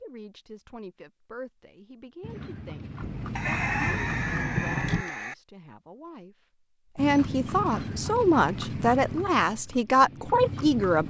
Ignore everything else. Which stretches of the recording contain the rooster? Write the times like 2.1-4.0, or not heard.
3.4-5.3.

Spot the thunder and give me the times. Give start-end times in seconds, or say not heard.
3.0-5.0.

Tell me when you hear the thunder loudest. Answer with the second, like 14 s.
5 s.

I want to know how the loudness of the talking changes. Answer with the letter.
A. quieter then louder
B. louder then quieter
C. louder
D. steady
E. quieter
C.